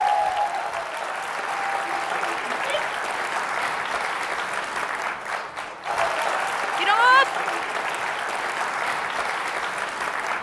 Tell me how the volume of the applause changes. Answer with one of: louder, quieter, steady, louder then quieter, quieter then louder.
steady.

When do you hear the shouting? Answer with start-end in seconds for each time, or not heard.
2.5-3.0, 6.8-7.3.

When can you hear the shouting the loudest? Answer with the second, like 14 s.
7 s.